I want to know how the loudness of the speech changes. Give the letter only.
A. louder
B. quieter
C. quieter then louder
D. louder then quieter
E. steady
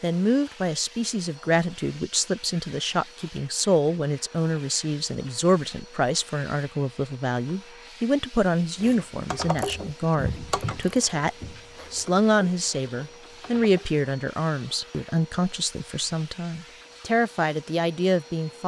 E.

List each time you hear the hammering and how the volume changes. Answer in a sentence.
You can't hear the hammering here.